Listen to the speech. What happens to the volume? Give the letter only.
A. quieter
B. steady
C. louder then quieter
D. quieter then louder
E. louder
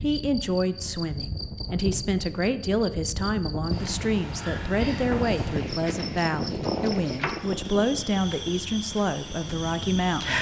B.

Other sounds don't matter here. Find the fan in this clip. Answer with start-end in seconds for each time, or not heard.
0.1-10.1.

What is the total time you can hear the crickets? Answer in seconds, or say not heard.
10 s.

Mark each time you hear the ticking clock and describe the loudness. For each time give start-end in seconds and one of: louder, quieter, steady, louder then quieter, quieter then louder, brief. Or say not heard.
not heard.